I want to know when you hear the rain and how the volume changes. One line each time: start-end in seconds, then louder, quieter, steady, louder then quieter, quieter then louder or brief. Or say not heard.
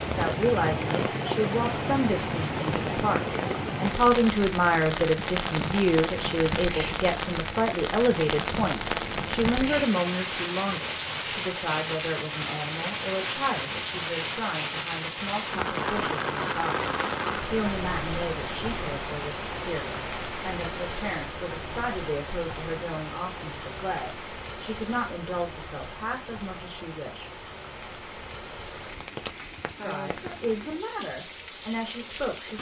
0.0-32.5 quieter.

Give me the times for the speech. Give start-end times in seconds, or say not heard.
0.0-16.9, 17.5-27.3, 29.8-32.5.